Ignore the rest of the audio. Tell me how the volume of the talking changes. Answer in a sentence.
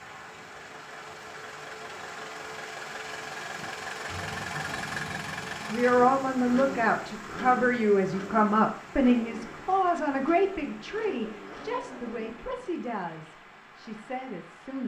The volume of the talking goes down.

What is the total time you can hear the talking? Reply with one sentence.
The talking can be heard for 9 seconds in total.